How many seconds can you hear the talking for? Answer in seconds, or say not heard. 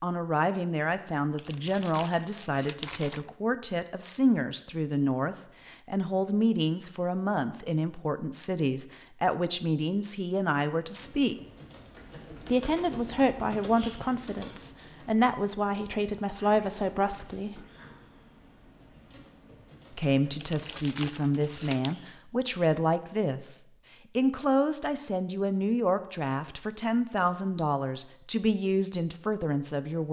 27 s.